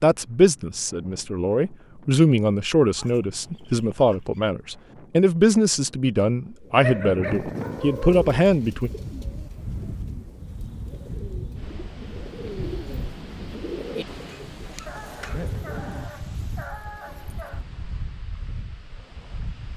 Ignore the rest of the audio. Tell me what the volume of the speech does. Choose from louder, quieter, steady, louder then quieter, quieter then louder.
steady.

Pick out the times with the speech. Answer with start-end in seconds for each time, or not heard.
0.0-8.9.